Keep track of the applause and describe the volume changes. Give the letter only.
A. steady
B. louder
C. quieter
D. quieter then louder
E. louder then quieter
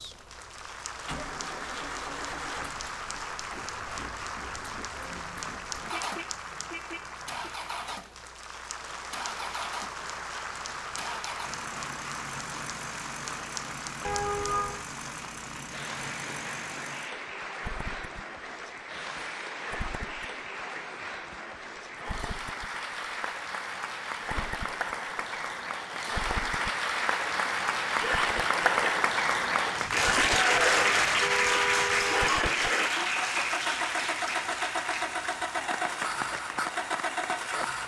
B.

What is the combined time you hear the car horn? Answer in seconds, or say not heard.
5 s.